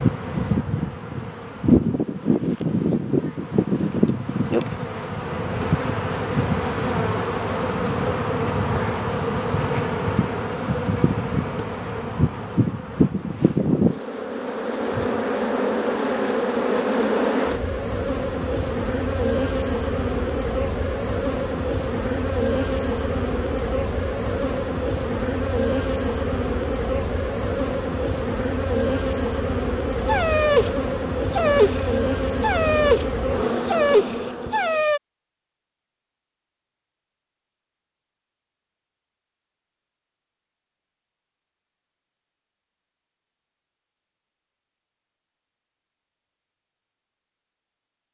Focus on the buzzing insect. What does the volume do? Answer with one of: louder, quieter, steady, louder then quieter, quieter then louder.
steady.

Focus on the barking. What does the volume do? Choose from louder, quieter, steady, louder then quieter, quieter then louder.
steady.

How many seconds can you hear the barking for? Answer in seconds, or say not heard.
5 s.